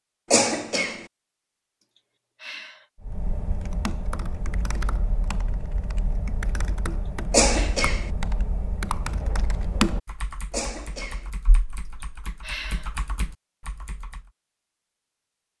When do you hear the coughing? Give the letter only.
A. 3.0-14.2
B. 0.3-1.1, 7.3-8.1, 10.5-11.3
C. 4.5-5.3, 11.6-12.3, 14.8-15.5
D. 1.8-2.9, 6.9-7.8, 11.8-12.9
B.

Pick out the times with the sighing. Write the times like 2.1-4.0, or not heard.
1.8-2.9, 6.9-7.8, 11.8-12.9.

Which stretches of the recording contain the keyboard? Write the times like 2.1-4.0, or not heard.
3.0-14.2.